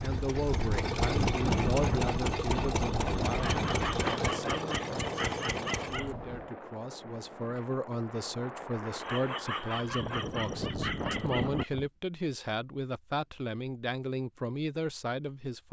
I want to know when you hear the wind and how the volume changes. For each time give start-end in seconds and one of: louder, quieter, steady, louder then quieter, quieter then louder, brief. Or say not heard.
0.0-11.9 quieter then louder.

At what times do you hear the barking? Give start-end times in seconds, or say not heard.
3.3-6.1, 8.9-11.7.